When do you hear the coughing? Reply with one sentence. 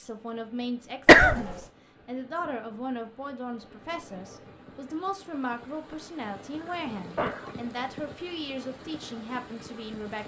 You can hear the coughing from 1.1 to 1.6 s and from 6.6 to 7.5 s.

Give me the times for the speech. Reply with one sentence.
The speech can be heard from 0.0 to 10.2 s.